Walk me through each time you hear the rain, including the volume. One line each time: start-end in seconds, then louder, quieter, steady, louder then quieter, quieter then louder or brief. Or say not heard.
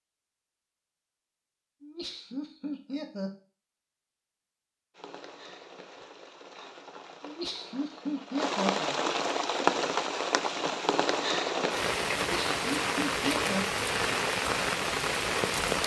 5.0-15.8 louder.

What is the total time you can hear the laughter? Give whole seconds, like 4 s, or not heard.
5 s.